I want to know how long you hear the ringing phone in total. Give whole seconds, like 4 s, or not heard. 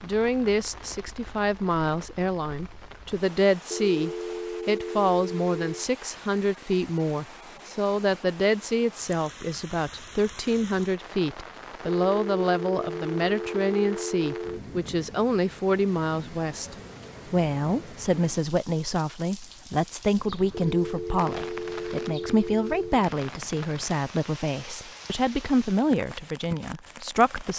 7 s.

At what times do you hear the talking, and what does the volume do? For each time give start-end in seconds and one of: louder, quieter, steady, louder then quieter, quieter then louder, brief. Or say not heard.
0.0-27.5 steady.